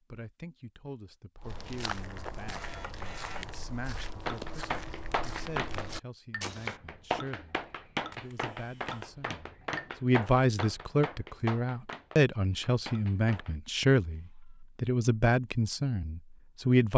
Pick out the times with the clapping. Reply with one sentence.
You can hear the clapping from 4.0 to 13.6 s.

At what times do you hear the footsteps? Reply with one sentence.
You can hear the footsteps from 1.4 to 6.8 s.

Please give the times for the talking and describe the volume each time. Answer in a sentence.
The talking can be heard from 0.1 to 16.9 s, getting louder.